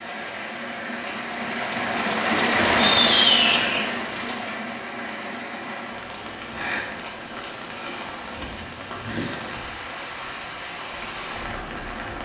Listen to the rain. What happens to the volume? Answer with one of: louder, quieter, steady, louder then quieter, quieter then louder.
quieter.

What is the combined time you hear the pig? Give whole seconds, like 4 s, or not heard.
2 s.